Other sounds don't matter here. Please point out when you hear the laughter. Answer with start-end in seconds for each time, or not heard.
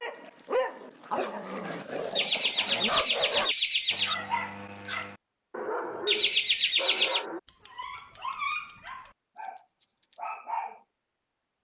2.1-4.2, 6.0-7.2.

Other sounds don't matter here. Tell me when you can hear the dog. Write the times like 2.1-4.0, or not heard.
0.0-10.8.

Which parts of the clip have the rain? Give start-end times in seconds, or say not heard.
not heard.